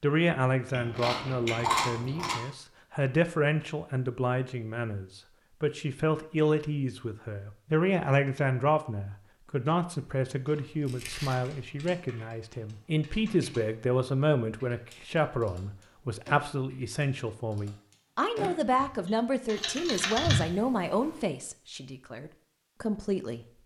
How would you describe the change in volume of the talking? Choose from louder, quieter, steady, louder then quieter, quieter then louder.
steady.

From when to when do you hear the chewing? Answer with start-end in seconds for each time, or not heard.
0.7-2.4, 10.7-11.6, 19.6-21.2.